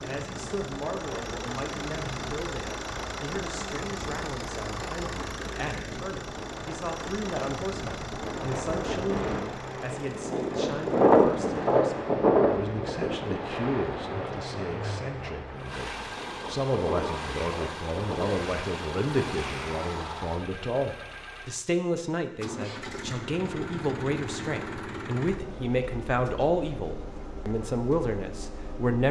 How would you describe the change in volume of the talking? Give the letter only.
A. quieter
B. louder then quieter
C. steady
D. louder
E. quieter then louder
D.